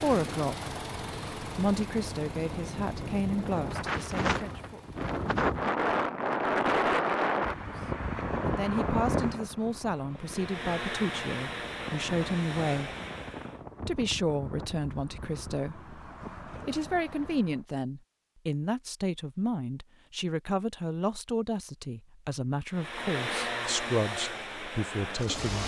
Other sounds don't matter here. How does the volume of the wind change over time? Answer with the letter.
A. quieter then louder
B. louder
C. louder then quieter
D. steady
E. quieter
C.